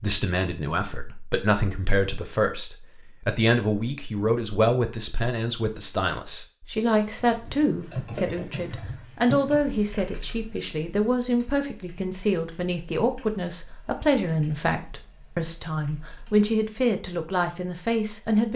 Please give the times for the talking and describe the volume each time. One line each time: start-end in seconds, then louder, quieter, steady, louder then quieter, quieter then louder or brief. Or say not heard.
0.0-18.5 steady.